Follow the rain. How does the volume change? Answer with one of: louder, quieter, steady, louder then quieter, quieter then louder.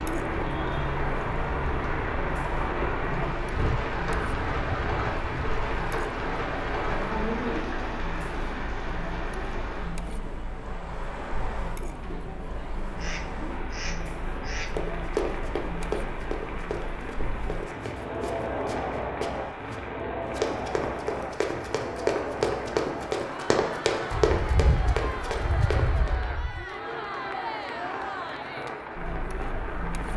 quieter.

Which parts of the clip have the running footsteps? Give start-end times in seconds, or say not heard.
14.7-26.1.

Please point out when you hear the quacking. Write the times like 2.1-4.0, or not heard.
3.5-5.5, 13.0-14.8, 24.1-26.6.